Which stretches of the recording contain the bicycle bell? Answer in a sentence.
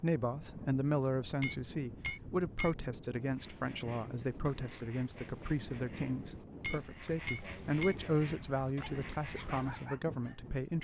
The bicycle bell can be heard from 1.2 to 2.9 s and from 6.4 to 8.2 s.